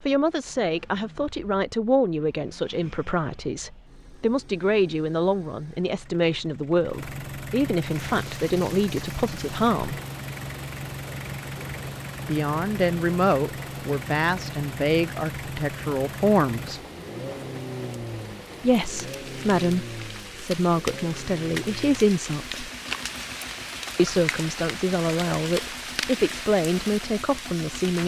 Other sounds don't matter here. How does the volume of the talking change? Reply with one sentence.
The volume of the talking stays about the same.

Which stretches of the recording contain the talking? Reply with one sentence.
The talking can be heard from 0.0 to 10.0 s, from 12.2 to 16.8 s, from 18.6 to 22.6 s and from 23.9 to 28.0 s.